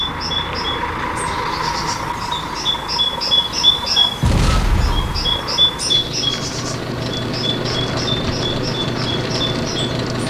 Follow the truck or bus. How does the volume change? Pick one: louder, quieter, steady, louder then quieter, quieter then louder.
quieter then louder.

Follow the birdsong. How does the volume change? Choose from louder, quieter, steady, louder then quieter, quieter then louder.
louder then quieter.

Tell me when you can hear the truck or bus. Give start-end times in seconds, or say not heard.
0.0-10.2.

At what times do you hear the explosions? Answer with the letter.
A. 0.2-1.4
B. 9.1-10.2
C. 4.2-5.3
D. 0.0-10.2
C.